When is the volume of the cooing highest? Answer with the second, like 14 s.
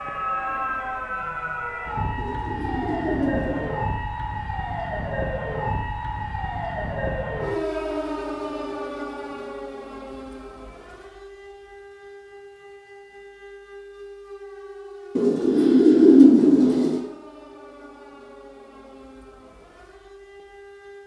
16 s.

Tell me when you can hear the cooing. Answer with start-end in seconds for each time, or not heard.
2.1-3.8, 15.2-17.0.